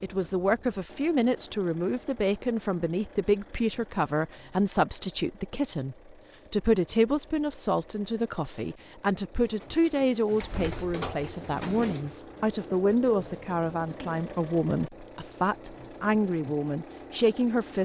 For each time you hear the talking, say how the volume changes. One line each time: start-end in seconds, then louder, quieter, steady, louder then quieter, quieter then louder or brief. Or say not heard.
0.0-17.8 steady.